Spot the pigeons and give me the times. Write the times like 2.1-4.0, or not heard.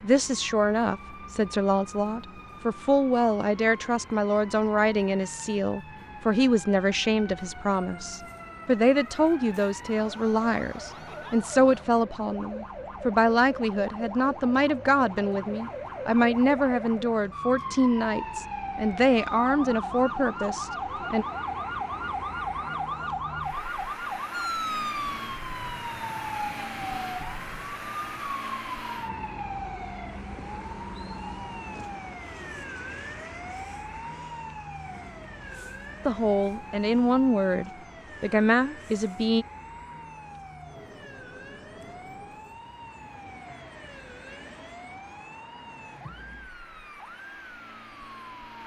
not heard.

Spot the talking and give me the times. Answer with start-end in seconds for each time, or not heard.
0.0-21.2, 36.0-39.5.